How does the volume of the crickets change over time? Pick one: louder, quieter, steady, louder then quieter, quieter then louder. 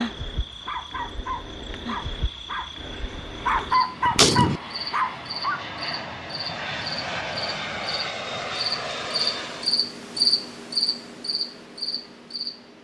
louder.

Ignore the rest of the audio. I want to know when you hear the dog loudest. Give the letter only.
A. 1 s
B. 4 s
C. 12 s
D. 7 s
B.